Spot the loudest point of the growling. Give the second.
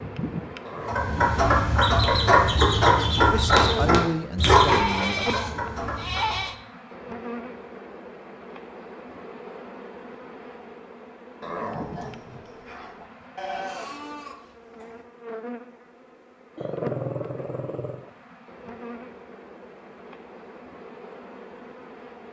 17 s.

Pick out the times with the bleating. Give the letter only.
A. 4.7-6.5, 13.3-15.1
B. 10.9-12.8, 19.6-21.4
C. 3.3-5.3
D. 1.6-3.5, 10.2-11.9
A.